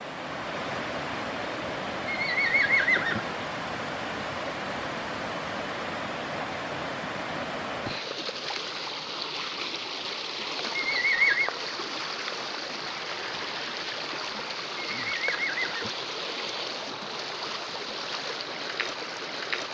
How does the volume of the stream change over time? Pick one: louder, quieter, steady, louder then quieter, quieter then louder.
steady.